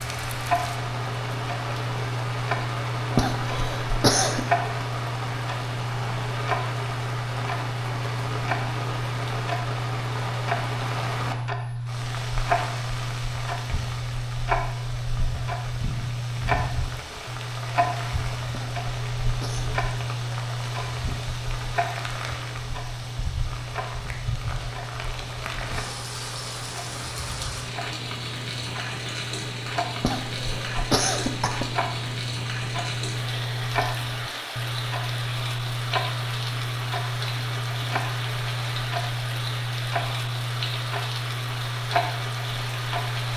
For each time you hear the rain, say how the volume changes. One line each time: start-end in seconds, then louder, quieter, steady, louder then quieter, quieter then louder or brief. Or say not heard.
0.0-43.3 steady.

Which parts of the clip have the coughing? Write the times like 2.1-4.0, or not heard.
3.1-4.5, 18.5-19.7, 30.0-31.8.